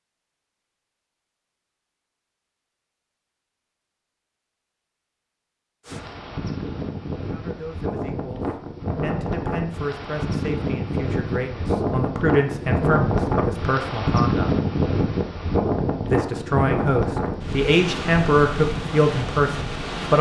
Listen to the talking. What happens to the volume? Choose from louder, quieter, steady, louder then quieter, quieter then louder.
louder.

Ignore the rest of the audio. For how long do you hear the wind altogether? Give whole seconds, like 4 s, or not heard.
14 s.